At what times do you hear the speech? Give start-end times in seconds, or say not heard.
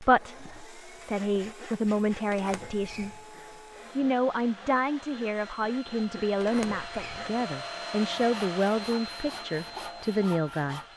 0.0-3.2, 4.0-10.8.